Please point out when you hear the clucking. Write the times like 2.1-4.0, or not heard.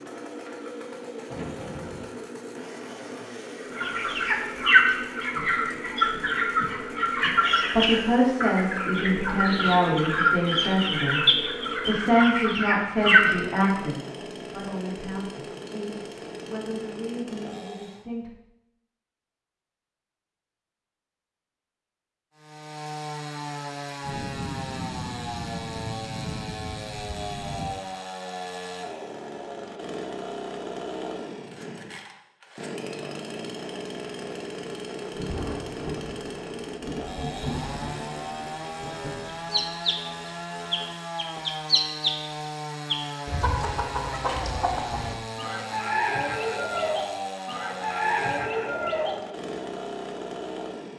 3.7-13.8, 39.5-49.1.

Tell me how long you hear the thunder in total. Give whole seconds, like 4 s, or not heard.
9 s.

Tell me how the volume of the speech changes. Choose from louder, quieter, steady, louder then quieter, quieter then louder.
quieter.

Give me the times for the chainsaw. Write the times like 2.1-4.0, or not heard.
0.0-18.1, 22.4-50.9.